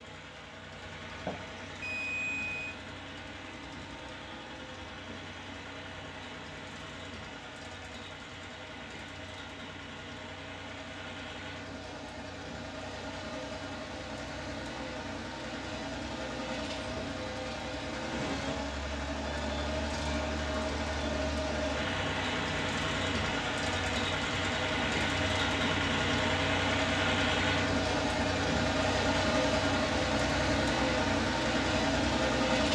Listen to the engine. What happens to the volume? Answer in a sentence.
The loudness of the engine goes up.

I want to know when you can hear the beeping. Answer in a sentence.
The beeping can be heard from 1.2 to 2.8 s.